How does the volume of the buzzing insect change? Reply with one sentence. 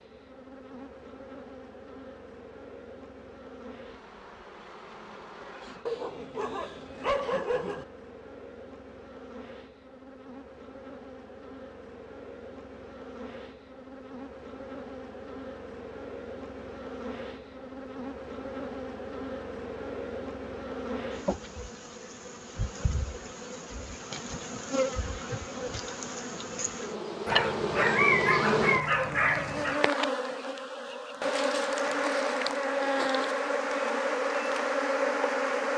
The volume of the buzzing insect goes up.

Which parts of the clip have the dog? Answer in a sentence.
You can hear the dog from 5.8 to 7.8 s and from 27.2 to 29.8 s.